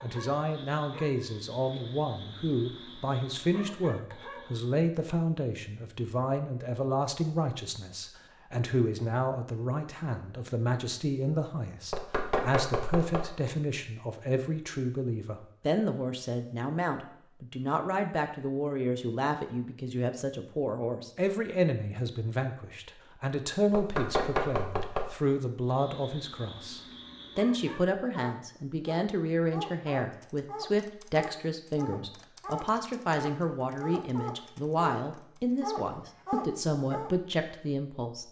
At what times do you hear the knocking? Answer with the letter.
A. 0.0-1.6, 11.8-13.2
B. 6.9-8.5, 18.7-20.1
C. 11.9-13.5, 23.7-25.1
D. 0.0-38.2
C.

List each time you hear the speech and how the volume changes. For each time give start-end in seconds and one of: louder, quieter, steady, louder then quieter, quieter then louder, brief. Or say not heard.
0.0-38.2 steady.